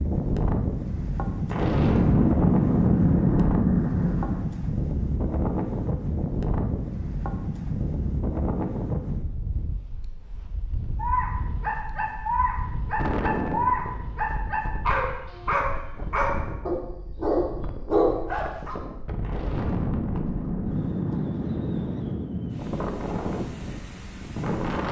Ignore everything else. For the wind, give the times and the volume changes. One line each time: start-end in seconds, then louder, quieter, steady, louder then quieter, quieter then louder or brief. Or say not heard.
0.0-24.8 quieter then louder.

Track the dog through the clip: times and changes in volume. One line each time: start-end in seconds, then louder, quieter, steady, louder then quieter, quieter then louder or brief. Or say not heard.
10.9-18.8 louder.